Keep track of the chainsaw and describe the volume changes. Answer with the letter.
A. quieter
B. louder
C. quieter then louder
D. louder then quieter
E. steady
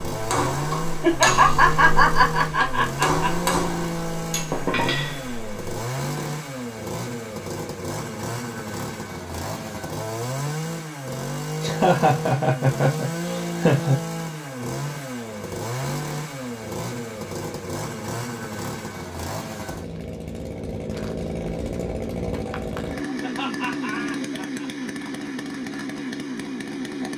E.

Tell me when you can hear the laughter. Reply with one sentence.
The laughter can be heard from 1.0 to 3.5 s, from 11.6 to 14.0 s and from 23.2 to 24.9 s.